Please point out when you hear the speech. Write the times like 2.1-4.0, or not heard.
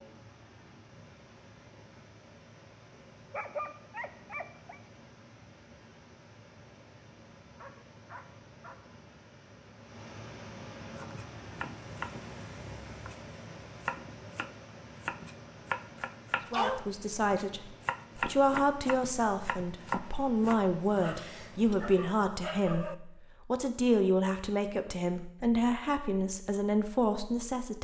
16.5-27.7.